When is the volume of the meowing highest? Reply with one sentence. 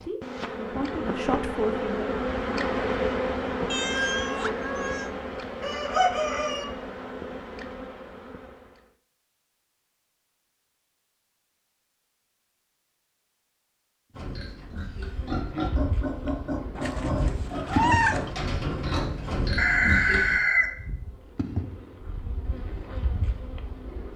The volume of the meowing peaks at 18 seconds.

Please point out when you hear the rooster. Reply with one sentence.
You can hear the rooster from 5.6 to 6.7 s and from 19.6 to 20.8 s.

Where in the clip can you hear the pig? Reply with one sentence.
The pig can be heard from 14.2 to 20.4 s.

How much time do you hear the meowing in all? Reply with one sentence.
The meowing can be heard for 3 seconds in total.